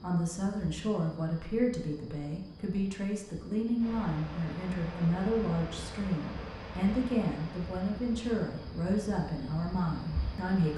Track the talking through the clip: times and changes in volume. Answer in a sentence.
The talking can be heard from 0.0 to 10.7 s, at a steady volume.